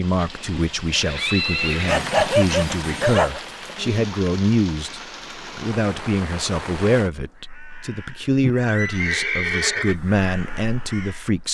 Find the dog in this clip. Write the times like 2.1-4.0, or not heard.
1.9-3.4.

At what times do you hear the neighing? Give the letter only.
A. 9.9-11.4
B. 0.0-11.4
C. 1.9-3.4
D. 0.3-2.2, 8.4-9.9
D.